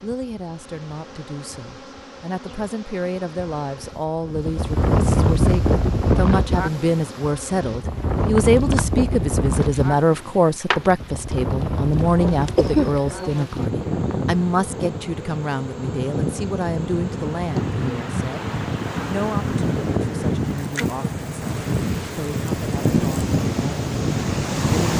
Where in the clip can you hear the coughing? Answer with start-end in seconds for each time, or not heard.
12.6-13.0.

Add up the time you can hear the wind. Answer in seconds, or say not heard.
21 s.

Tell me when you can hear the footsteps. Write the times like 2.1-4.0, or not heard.
not heard.